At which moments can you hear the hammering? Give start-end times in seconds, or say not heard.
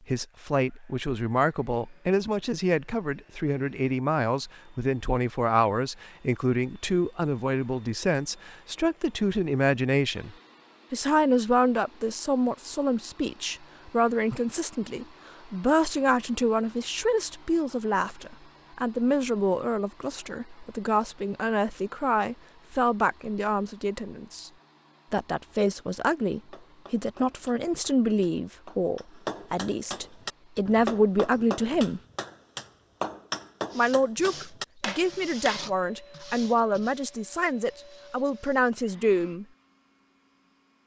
26.3-35.6.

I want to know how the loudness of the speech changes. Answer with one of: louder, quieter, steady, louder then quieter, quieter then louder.
steady.